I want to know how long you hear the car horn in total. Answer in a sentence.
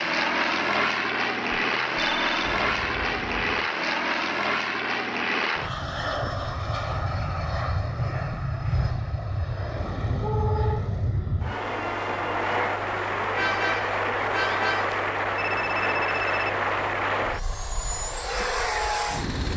The car horn can be heard for 4 seconds in total.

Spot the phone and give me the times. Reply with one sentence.
The phone can be heard from 1.5 to 2.5 s and from 15.3 to 16.5 s.